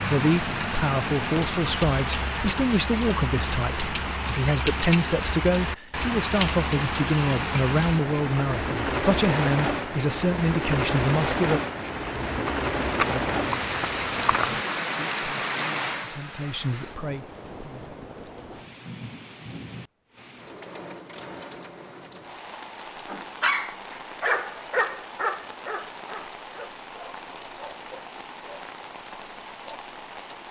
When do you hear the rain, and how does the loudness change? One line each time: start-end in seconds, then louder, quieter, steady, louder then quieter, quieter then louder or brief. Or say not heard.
0.0-30.4 quieter.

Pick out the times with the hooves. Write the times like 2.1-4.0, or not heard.
12.2-14.7.